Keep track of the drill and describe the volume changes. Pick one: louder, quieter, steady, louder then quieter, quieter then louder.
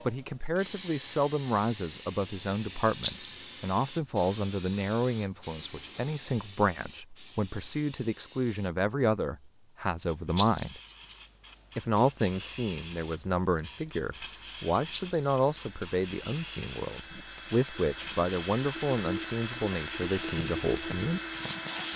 louder.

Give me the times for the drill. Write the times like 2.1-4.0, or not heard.
14.3-21.9.